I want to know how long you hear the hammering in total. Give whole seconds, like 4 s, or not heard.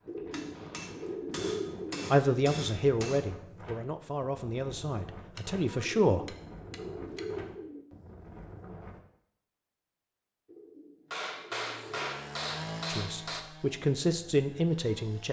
7 s.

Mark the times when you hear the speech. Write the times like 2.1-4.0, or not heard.
2.1-6.2, 12.9-15.2.